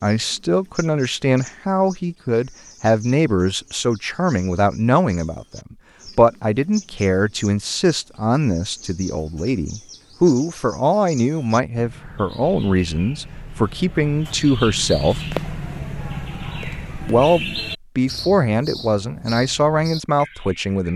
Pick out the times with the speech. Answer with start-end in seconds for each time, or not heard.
0.0-15.2, 17.1-20.9.